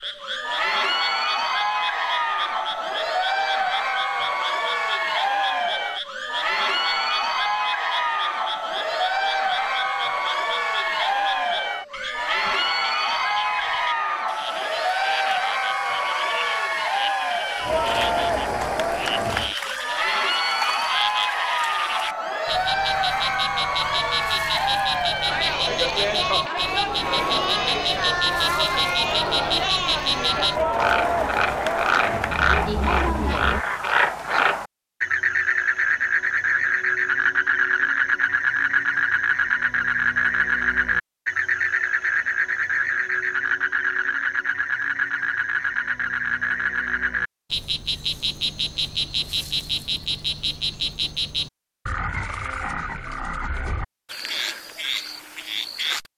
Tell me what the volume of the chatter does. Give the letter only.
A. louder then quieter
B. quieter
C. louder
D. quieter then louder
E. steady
E.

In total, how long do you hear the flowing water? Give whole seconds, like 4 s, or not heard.
not heard.